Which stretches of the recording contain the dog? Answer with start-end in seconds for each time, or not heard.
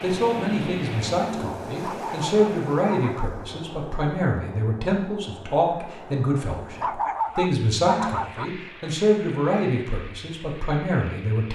1.7-3.4, 6.7-8.5.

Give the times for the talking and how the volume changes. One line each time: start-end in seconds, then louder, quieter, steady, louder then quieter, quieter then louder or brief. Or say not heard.
0.0-11.5 steady.